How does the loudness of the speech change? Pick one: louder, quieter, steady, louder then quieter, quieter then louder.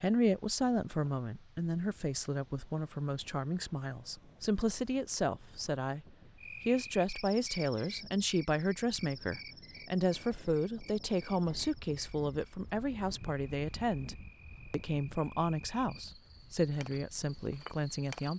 steady.